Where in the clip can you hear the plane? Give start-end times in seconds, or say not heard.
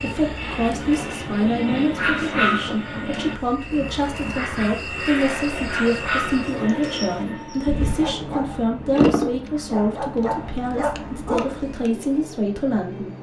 0.0-13.1.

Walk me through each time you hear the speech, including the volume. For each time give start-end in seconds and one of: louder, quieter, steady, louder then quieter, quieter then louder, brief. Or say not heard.
0.0-13.1 steady.